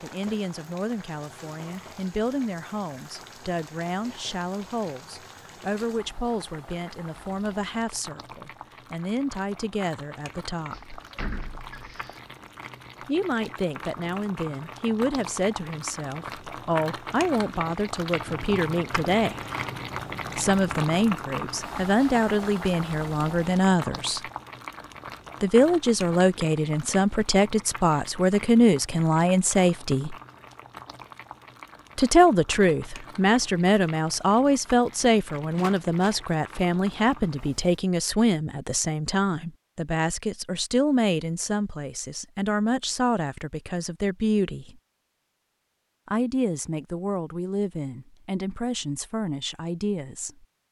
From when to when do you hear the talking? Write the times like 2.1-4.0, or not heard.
0.0-10.9, 13.1-19.4, 20.4-24.2, 25.4-30.1, 31.9-44.8, 46.0-50.5.